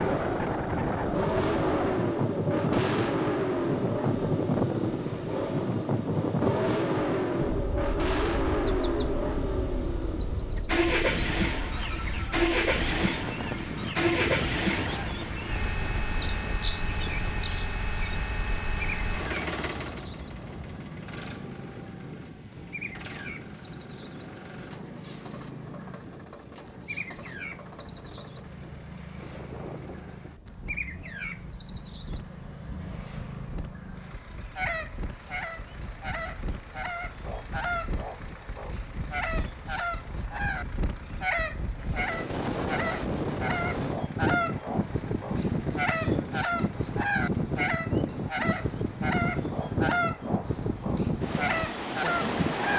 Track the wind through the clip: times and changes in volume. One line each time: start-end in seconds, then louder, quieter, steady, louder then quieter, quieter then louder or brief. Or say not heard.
0.0-52.7 quieter then louder.